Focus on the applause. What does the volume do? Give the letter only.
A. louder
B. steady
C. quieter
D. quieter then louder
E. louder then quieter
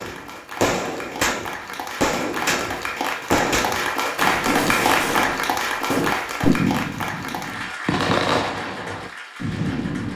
E.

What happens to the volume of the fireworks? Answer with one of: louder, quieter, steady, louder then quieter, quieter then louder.
steady.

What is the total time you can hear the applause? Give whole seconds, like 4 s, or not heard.
10 s.